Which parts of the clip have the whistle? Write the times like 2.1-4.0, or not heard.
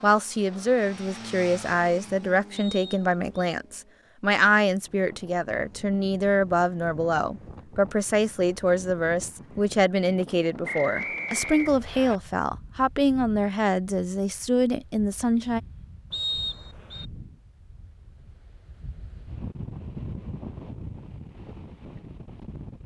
2.5-3.5, 10.7-12.2, 16.1-17.1.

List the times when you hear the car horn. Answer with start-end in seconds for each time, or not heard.
not heard.